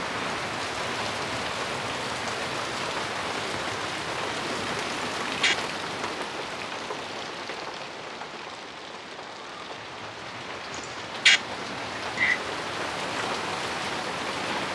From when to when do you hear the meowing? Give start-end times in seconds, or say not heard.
not heard.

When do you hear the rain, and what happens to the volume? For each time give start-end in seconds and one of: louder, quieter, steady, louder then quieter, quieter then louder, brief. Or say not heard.
0.0-14.7 quieter then louder.